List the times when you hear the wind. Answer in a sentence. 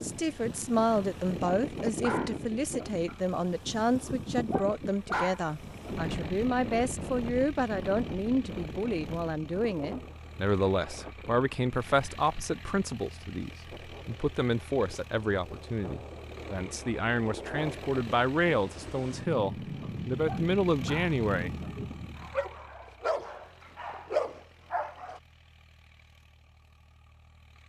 The wind can be heard from 0.0 to 22.4 s.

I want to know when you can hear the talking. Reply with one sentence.
The talking can be heard from 0.0 to 21.6 s.